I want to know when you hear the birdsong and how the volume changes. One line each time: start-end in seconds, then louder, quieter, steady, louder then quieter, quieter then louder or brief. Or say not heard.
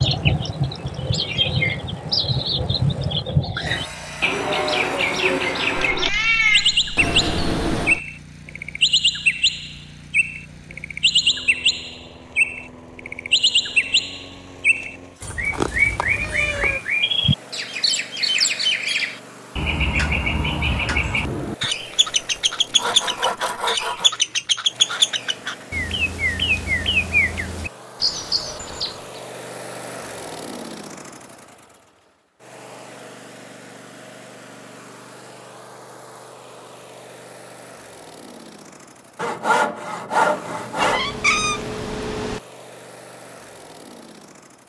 0.0-29.2 steady.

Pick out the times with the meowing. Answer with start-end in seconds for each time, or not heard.
5.8-8.0, 15.2-16.8, 40.8-42.4.